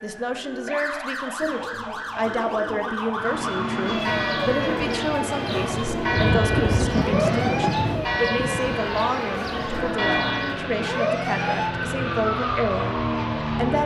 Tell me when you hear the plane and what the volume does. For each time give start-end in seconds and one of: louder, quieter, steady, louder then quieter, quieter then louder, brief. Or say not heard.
3.1-13.8 steady.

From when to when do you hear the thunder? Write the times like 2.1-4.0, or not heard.
6.1-8.8.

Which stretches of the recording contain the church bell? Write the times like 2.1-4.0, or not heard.
3.9-10.6.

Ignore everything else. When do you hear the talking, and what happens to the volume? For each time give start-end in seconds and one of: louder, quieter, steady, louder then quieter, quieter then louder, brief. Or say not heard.
0.0-13.8 steady.